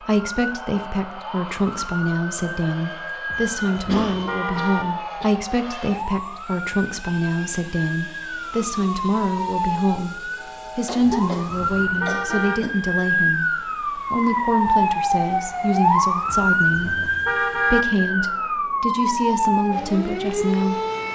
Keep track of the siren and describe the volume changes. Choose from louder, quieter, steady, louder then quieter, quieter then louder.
louder.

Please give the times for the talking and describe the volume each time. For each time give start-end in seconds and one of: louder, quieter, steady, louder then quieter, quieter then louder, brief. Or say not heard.
0.0-20.9 steady.